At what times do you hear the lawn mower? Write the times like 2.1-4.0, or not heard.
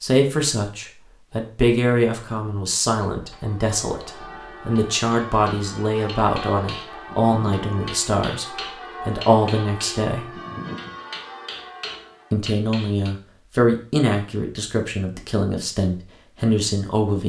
not heard.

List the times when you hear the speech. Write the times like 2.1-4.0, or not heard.
0.0-10.3, 12.3-17.2.